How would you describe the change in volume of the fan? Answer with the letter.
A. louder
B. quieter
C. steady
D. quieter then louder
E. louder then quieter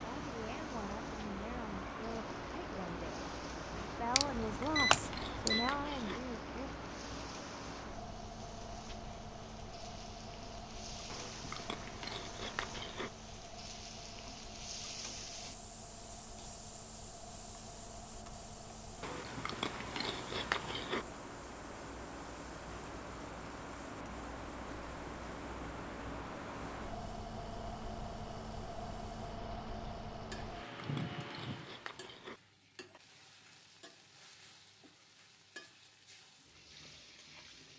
D.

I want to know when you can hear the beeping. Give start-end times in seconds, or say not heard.
4.2-5.7.